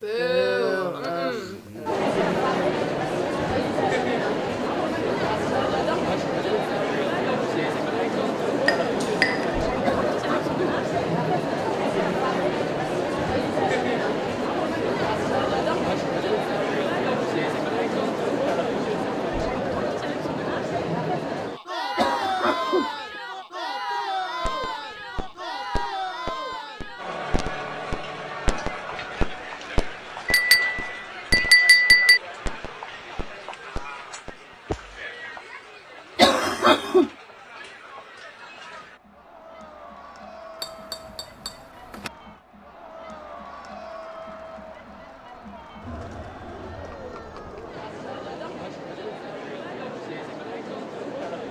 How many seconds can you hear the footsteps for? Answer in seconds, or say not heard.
not heard.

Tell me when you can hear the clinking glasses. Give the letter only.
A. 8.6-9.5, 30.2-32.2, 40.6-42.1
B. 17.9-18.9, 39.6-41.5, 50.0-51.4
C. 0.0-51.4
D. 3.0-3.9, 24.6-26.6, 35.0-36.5
A.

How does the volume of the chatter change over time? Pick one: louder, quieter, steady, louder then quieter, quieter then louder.
quieter.